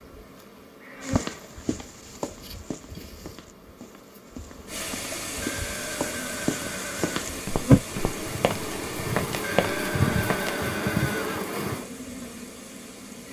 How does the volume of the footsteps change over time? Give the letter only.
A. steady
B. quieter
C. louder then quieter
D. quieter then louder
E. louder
D.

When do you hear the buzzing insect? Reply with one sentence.
The buzzing insect can be heard from 0.0 to 13.2 s.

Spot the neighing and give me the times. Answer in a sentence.
The neighing can be heard from 0.8 to 1.4 s, from 5.4 to 7.2 s and from 9.4 to 11.4 s.